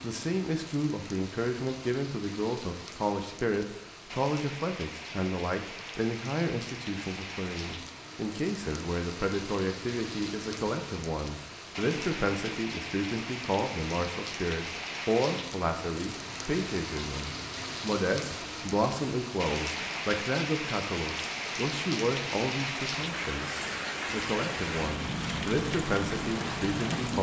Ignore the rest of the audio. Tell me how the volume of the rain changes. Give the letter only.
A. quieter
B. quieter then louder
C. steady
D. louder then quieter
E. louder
E.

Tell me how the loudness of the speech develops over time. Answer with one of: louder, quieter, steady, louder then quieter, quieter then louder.
steady.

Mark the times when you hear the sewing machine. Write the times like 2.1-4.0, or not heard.
not heard.